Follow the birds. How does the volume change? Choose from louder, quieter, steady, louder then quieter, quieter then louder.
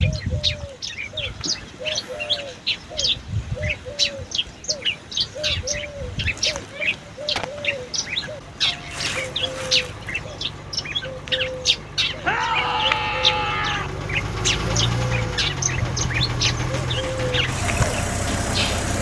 steady.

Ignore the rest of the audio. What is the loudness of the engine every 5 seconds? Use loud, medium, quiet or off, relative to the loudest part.
off, quiet, medium, loud.